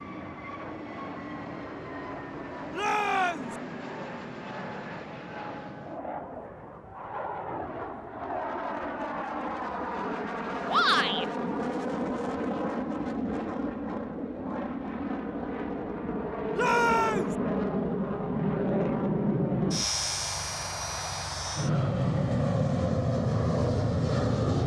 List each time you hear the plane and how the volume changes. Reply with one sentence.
The plane can be heard from 0.0 to 24.6 s, getting louder.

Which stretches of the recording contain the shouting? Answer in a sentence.
The shouting can be heard from 2.7 to 3.5 s, from 10.7 to 11.2 s and from 16.6 to 17.4 s.